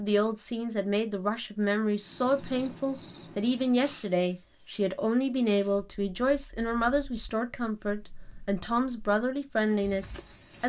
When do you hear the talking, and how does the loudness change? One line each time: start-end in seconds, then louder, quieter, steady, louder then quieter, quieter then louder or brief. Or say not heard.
0.0-10.6 steady.